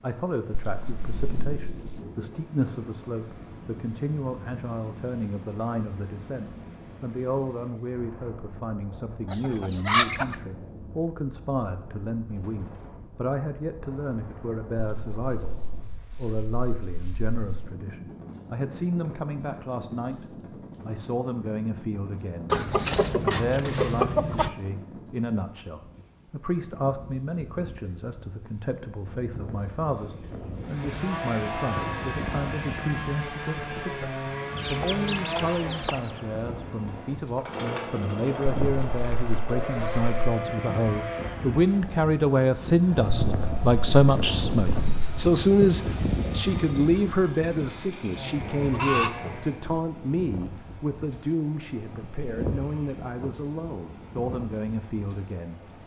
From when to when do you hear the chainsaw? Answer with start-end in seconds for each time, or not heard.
30.6-49.8.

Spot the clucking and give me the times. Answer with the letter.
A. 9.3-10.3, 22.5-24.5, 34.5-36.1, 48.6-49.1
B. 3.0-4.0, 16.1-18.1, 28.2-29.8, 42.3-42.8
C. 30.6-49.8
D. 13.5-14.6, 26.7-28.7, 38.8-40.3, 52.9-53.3
A.